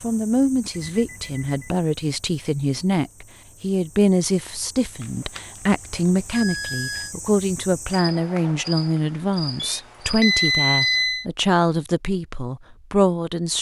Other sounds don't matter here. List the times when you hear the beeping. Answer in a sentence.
The beeping can be heard from 0.8 to 1.8 s, from 5.0 to 7.2 s and from 9.6 to 11.2 s.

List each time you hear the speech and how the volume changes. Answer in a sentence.
You can hear the speech from 0.0 to 13.5 s, at a steady volume.